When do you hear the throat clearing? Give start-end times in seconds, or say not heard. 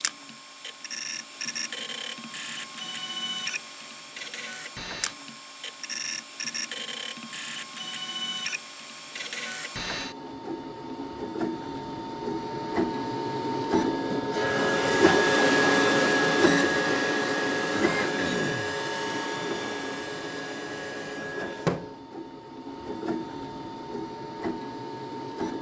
17.7-18.8.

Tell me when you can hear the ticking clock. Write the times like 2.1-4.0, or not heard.
not heard.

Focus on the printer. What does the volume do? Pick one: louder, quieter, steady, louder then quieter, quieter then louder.
louder then quieter.